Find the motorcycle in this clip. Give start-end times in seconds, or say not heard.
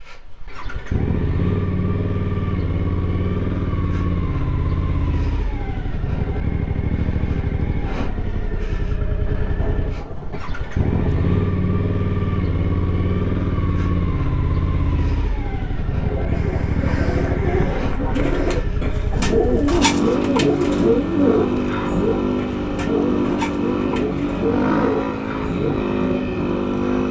0.0-27.0.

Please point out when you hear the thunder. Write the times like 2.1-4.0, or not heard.
9.6-11.3.